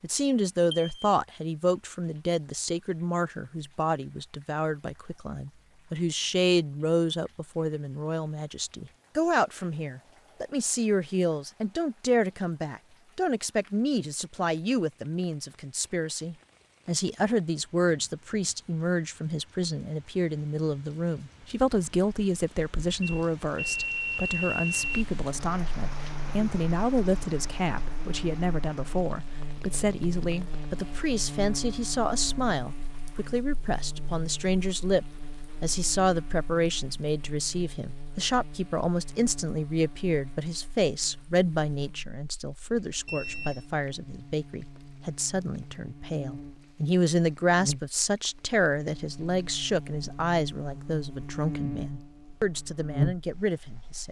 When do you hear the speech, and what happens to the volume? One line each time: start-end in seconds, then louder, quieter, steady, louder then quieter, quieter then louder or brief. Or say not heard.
0.0-54.0 steady.